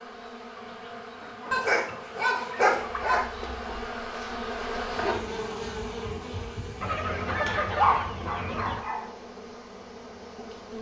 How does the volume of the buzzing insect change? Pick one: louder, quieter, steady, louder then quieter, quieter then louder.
louder then quieter.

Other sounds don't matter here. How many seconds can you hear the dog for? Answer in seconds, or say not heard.
3 s.